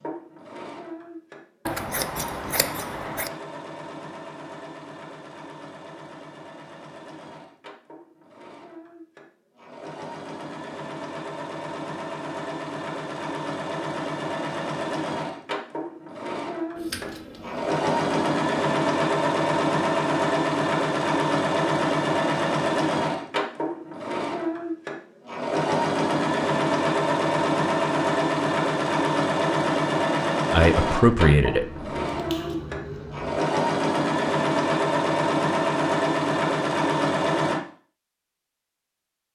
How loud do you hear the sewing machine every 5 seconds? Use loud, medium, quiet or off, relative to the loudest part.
quiet, quiet, medium, loud, loud, loud, loud, loud.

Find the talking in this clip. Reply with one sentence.
The talking can be heard from 30.5 to 31.9 s.